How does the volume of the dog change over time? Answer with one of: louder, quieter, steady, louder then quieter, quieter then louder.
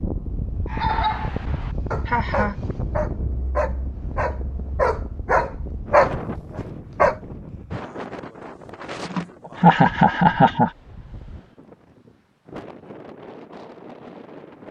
louder.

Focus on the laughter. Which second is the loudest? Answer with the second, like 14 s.
10 s.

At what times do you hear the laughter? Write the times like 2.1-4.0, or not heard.
2.0-2.5, 9.1-10.7.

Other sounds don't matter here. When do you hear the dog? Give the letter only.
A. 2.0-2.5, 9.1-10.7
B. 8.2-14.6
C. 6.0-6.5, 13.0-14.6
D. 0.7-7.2
D.